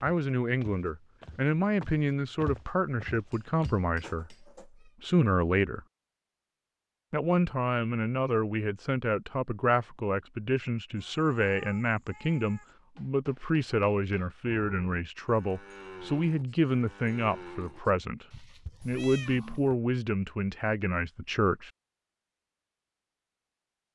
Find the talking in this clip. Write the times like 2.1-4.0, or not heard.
0.0-4.3, 5.0-5.8, 7.1-21.7.